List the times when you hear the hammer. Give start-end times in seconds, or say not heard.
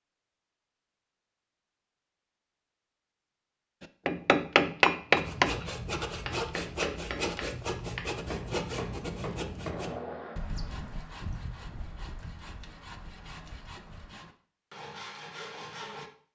3.8-10.3.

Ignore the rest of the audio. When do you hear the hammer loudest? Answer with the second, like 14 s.
5 s.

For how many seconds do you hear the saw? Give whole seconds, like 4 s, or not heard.
11 s.